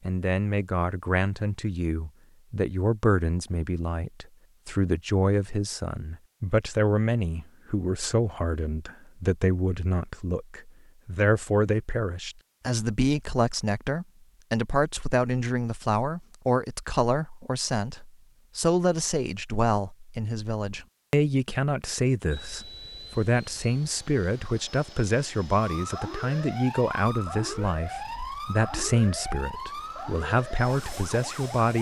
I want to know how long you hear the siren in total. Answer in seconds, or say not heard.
6 s.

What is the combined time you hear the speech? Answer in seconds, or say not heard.
32 s.